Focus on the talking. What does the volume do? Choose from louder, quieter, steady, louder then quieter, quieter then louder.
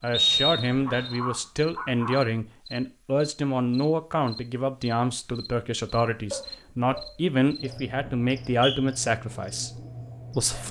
steady.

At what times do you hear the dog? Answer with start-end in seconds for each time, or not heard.
0.8-2.3, 6.3-8.2.